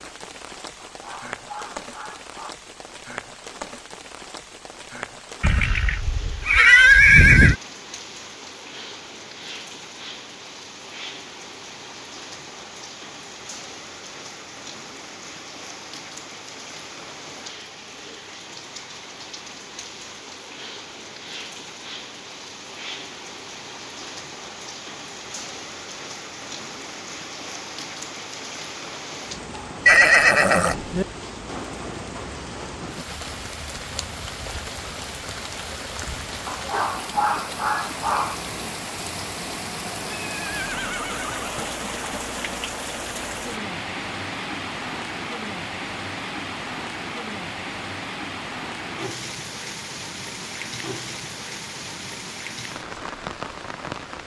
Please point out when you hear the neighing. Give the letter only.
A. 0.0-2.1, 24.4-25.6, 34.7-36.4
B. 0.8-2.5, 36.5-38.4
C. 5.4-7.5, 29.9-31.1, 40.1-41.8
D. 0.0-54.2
C.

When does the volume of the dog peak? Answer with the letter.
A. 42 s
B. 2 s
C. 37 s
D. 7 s
C.